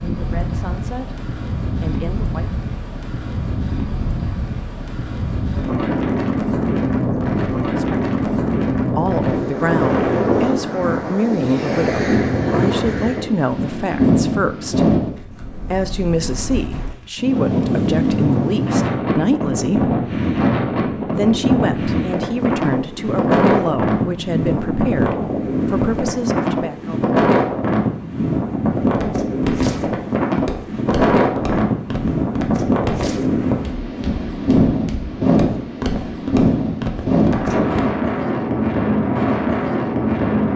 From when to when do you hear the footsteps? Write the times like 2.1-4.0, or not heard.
28.9-37.9.